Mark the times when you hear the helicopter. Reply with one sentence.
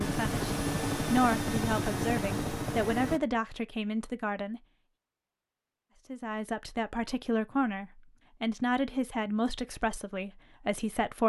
You can hear the helicopter from 0.0 to 3.2 s.